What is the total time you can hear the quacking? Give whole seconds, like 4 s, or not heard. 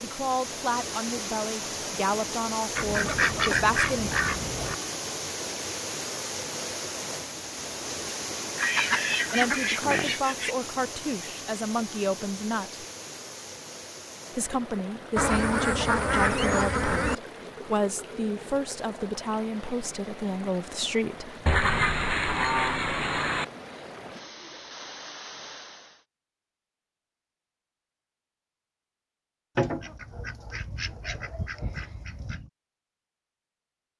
11 s.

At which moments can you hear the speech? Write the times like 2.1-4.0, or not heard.
0.0-4.1, 9.3-12.8, 14.3-21.4.